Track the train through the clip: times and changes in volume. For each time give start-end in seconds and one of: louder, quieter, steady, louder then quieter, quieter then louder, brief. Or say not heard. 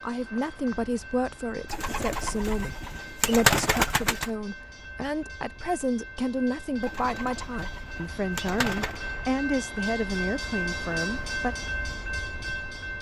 0.0-12.9 louder.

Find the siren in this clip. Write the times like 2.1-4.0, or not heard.
not heard.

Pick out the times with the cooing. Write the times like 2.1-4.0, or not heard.
1.6-4.3, 6.8-9.0.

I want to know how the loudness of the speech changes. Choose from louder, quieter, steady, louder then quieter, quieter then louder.
steady.